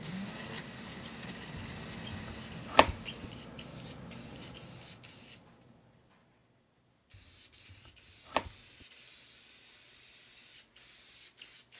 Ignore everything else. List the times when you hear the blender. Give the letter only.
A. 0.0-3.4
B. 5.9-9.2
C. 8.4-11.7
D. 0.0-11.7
A.